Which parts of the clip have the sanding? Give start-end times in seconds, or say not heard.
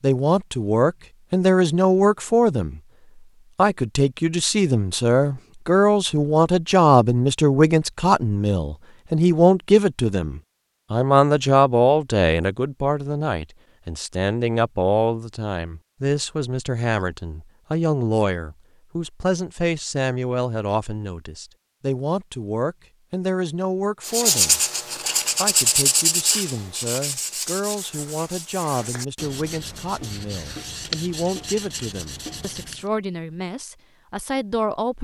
24.0-32.9.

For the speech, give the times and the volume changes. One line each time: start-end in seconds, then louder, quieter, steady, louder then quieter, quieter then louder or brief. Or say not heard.
0.0-2.8 brief
3.5-24.6 quieter
25.4-34.9 steady.